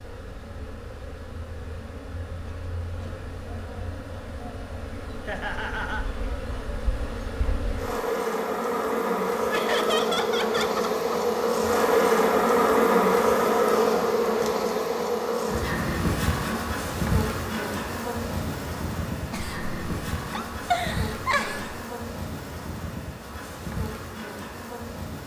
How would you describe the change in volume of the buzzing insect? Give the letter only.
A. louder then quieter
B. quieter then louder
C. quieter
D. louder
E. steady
A.